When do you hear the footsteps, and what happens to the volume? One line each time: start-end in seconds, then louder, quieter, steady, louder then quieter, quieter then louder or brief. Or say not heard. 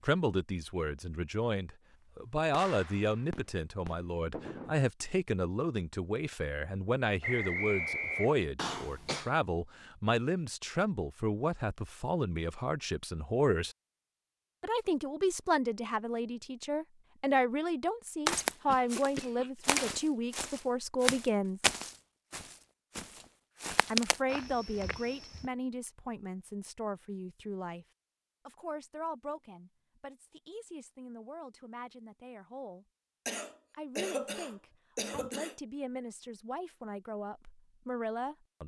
18.2-25.4 quieter then louder.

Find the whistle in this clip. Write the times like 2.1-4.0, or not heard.
7.2-8.4.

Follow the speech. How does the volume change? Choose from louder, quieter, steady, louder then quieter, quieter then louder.
quieter.